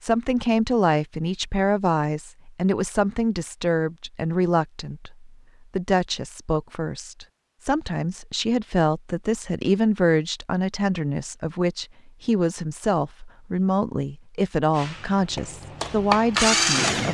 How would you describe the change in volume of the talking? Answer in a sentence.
The loudness of the talking stays about the same.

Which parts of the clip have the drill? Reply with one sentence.
The drill can be heard from 14.8 to 17.0 s.